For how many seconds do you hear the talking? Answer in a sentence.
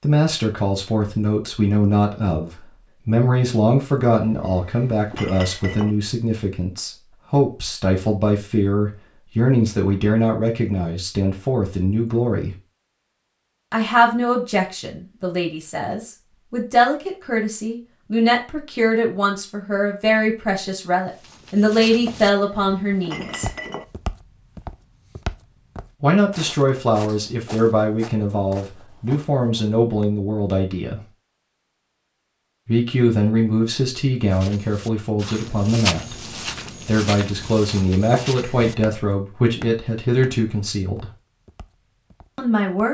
The talking can be heard for 36 seconds in total.